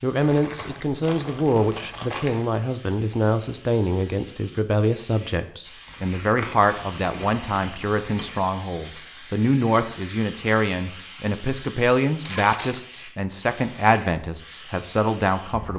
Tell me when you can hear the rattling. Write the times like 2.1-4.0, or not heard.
8.7-9.3.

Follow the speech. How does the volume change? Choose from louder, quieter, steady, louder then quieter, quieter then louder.
steady.